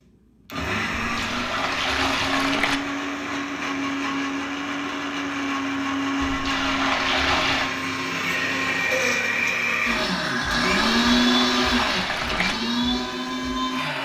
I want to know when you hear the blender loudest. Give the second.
11 s.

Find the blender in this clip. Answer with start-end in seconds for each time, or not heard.
0.3-14.0.